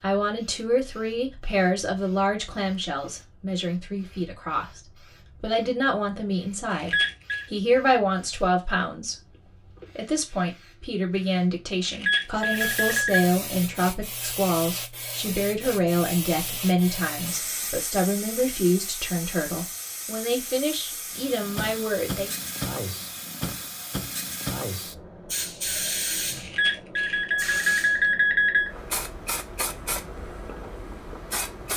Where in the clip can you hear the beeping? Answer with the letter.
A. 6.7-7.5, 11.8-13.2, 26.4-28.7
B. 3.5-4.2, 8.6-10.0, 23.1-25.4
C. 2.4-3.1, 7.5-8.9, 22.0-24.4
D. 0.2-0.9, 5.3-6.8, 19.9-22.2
A.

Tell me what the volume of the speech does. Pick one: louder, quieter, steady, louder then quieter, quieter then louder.
steady.